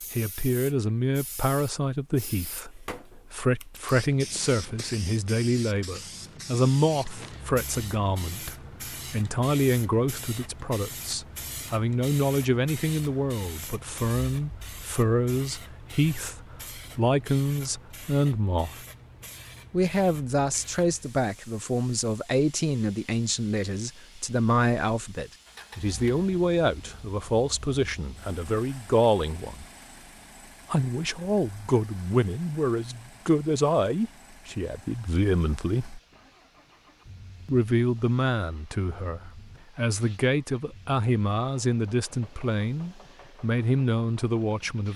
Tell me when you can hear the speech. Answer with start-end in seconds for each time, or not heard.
0.1-18.9, 19.7-29.6, 30.7-36.0, 37.5-44.9.